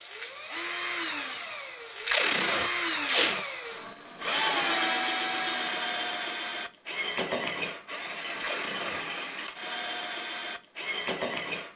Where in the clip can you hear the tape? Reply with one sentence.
The tape can be heard from 2.0 to 3.5 s and from 8.3 to 9.0 s.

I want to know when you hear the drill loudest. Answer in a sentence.
The loudest moment of the drill is at 5 seconds.